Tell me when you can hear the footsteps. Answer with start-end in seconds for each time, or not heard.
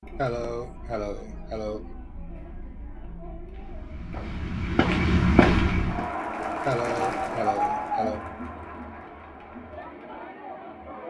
3.5-6.0.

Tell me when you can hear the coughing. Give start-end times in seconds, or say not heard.
0.1-1.9, 6.7-8.2.